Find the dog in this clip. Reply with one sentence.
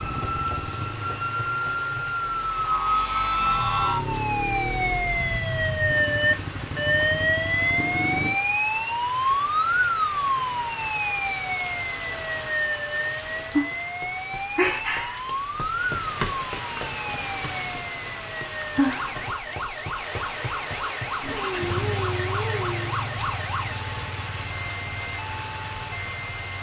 The dog can be heard from 21.2 to 22.9 s.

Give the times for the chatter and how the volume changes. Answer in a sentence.
You can't hear the chatter here.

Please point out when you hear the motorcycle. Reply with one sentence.
You can hear the motorcycle from 0.0 to 8.3 s and from 21.2 to 26.2 s.